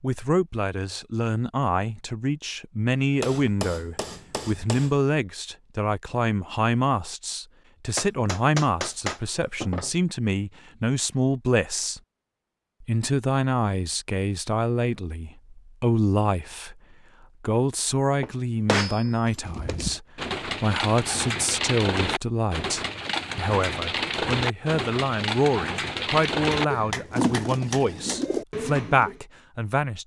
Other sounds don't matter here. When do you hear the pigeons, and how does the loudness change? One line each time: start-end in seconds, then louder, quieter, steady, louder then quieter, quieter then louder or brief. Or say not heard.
19.4-29.2 steady.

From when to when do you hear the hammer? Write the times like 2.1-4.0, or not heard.
3.2-5.0, 8.0-9.9, 18.2-19.8, 26.3-28.2.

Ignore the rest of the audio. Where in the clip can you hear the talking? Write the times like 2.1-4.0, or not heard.
0.0-12.0, 12.8-16.8, 17.4-30.0.